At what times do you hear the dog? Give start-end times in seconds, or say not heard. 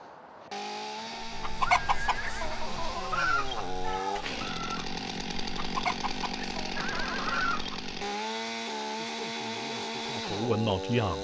not heard.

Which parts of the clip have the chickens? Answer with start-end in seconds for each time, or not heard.
1.2-8.1.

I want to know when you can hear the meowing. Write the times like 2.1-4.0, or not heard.
3.8-4.5.